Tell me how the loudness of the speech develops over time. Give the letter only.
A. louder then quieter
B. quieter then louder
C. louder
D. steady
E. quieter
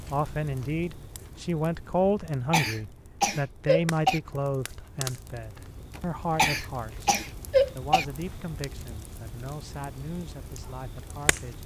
E.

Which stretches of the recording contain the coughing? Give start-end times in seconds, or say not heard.
2.5-4.2, 6.3-8.1.